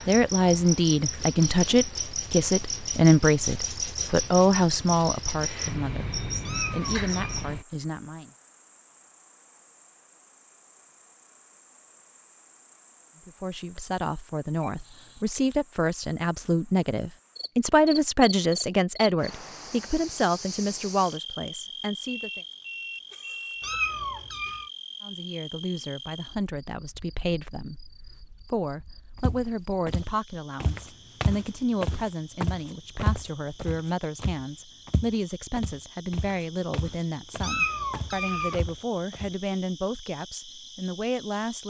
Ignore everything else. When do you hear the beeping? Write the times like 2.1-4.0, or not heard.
14.6-15.2, 22.1-23.8.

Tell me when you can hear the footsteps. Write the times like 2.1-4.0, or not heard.
29.2-39.4.